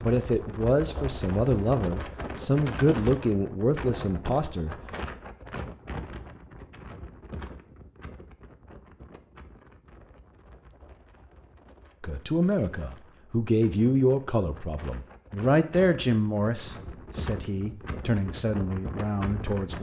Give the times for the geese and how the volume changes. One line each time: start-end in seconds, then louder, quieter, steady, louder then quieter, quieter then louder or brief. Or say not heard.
not heard.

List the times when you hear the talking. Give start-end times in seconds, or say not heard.
0.0-4.8, 12.0-19.7.